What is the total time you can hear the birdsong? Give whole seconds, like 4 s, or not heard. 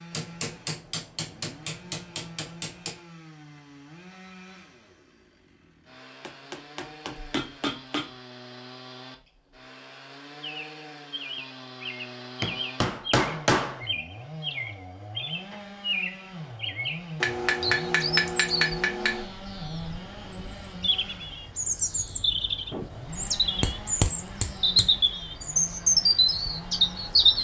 17 s.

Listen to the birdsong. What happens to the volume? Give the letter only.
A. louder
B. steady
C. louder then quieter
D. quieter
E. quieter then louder
A.